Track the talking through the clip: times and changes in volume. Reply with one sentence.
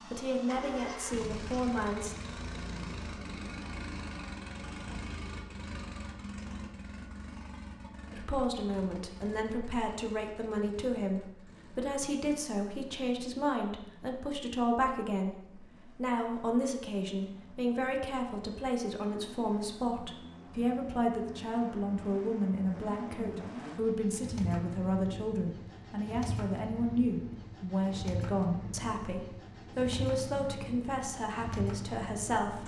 You can hear the talking briefly from 0.0 to 2.1 s; and from 8.1 to 32.6 s, at a steady volume.